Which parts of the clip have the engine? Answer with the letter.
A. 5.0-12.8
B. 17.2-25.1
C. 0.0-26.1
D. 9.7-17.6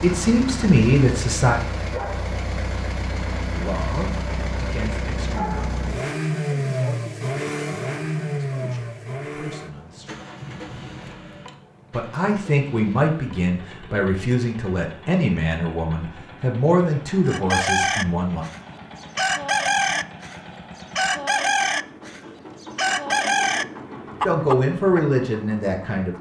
C.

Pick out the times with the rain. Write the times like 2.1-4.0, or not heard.
not heard.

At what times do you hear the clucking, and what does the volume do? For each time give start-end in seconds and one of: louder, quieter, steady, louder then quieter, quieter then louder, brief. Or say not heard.
17.2-25.1 steady.